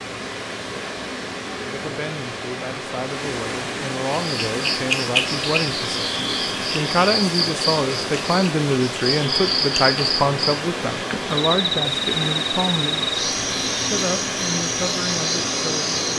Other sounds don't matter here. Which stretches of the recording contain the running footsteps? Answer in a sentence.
You can't hear the running footsteps here.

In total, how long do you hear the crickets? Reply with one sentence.
The crickets can be heard for 12 seconds in total.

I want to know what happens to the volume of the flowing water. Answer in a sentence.
The volume of the flowing water stays about the same.